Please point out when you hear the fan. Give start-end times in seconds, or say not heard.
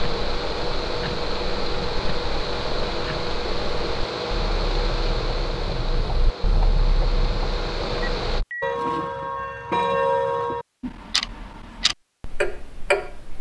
0.0-8.4.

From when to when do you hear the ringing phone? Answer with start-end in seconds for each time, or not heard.
8.0-8.8.